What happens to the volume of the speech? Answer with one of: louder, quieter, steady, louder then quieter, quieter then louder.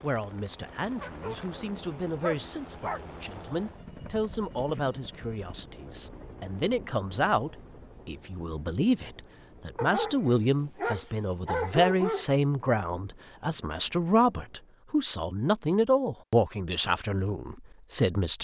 louder.